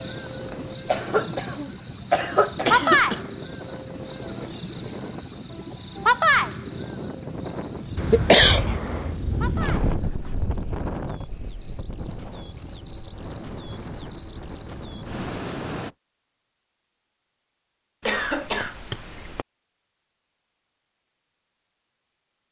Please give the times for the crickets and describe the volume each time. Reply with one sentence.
You can hear the crickets from 0.0 to 15.9 s, getting quieter then louder.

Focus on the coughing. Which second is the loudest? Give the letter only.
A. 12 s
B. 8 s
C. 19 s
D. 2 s
B.